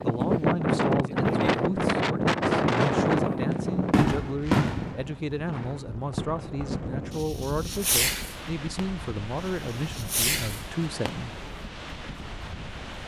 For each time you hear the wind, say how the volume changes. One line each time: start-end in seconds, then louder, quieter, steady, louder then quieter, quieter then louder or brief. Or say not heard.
0.0-13.0 quieter.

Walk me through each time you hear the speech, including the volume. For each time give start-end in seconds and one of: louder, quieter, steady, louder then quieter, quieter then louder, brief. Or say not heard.
0.0-11.3 steady.